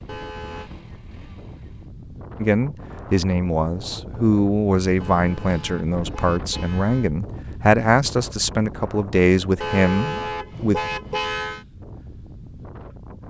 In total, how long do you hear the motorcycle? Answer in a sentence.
You can hear the motorcycle for 2 seconds altogether.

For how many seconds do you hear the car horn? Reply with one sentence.
You can hear the car horn for 5 seconds altogether.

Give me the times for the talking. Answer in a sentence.
You can hear the talking from 2.4 to 10.8 s.